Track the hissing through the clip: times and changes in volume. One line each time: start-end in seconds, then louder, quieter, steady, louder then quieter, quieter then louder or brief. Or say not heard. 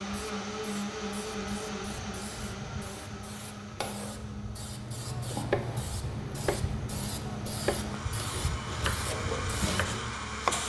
0.0-10.6 louder.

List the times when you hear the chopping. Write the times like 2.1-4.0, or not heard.
4.7-10.6.